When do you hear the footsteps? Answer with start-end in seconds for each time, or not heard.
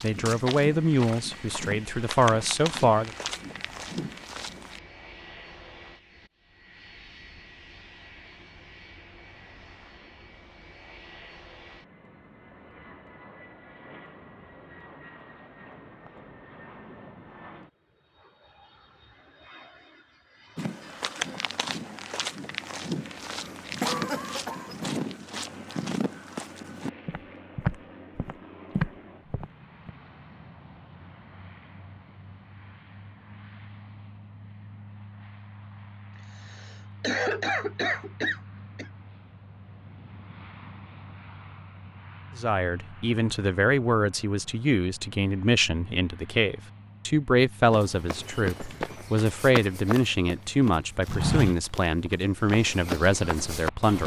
0.0-4.8, 20.6-29.9, 47.7-54.0.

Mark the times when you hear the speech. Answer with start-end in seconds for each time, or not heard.
0.0-3.1, 42.4-54.0.